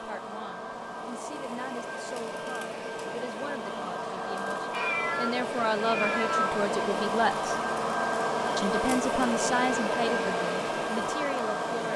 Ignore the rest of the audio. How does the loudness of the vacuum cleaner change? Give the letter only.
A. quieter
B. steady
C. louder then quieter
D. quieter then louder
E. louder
E.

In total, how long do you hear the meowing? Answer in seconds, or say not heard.
2 s.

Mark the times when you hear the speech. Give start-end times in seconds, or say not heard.
0.0-7.5, 8.6-11.9.